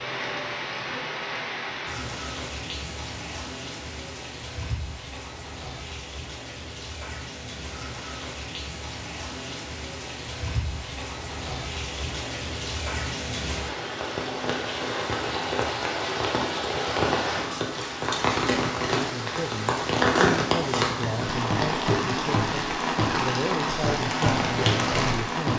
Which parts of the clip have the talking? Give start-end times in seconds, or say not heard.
18.9-25.5.